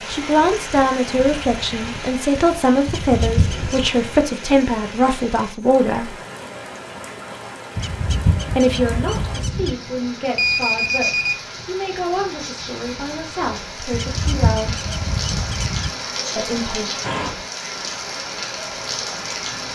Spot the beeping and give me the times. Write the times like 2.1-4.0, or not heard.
10.3-11.4.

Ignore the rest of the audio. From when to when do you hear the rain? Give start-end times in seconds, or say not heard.
0.0-19.7.